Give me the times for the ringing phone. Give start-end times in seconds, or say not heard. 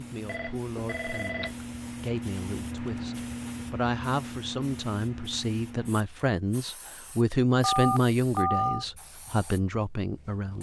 0.2-1.6, 7.6-8.8.